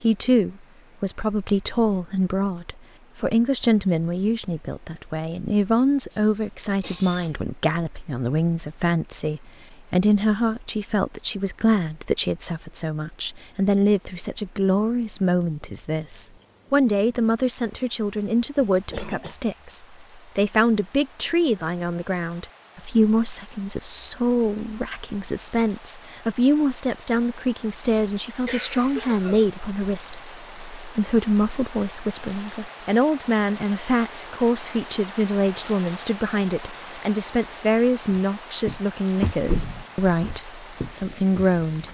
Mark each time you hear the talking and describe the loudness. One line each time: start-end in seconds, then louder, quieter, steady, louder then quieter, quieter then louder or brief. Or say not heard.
0.0-41.8 steady.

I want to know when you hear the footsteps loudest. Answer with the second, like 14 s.
39 s.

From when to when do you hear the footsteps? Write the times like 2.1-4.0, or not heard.
38.1-41.8.